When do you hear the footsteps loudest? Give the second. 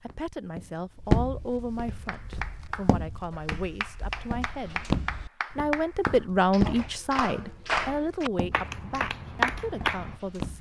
1 s.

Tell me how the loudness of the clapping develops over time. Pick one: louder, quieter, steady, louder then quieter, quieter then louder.
louder.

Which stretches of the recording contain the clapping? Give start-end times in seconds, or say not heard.
2.0-10.2.